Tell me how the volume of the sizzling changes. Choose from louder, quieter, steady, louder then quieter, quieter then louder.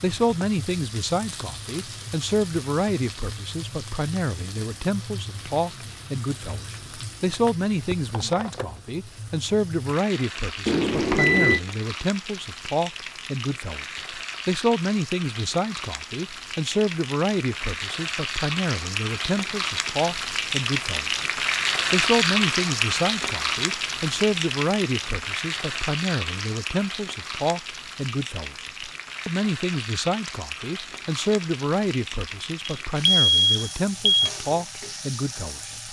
louder then quieter.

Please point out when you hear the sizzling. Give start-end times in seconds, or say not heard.
0.0-35.8.